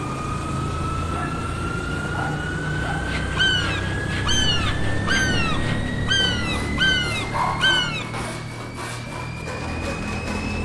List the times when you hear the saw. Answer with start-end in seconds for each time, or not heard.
2.9-10.6.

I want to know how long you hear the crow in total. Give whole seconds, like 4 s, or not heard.
5 s.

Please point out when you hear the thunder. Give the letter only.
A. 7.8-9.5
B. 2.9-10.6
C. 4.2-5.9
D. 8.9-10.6
C.